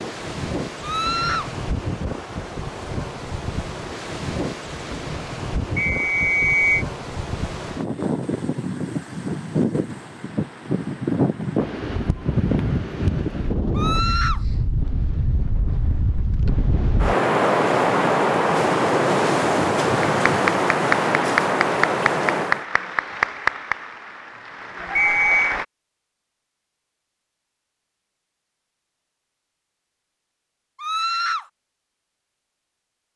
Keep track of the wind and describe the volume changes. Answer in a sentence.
The volume of the wind goes up.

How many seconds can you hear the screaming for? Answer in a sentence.
The screaming can be heard for 2 seconds in total.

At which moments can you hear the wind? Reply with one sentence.
You can hear the wind from 0.0 to 22.6 s.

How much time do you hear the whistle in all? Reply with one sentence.
The whistle can be heard for 2 seconds in total.